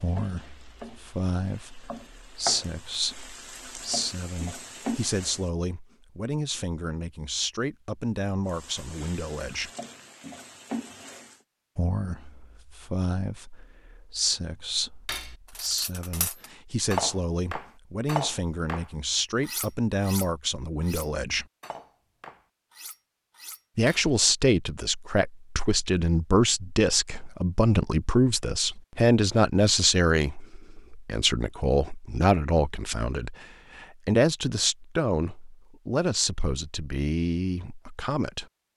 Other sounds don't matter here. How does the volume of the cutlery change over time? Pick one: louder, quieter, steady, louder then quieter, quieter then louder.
quieter.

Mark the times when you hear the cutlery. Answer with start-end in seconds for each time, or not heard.
15.1-24.1.